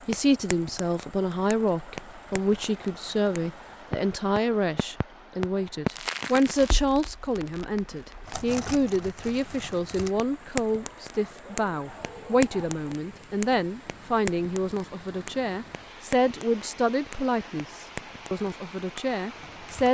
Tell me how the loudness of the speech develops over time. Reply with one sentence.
The loudness of the speech stays about the same.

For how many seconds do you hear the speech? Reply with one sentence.
The speech can be heard for 20 seconds in total.